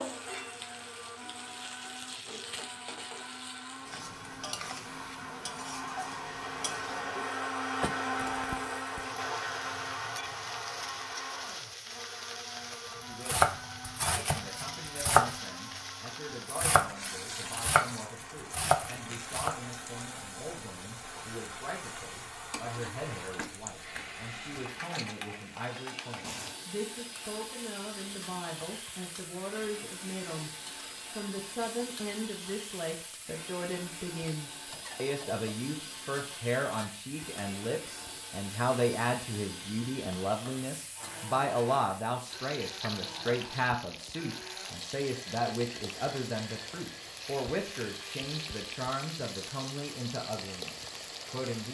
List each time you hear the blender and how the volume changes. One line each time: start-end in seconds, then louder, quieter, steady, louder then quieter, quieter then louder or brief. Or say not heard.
0.0-51.6 quieter.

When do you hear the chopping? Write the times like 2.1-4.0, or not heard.
13.2-17.9, 18.5-19.6.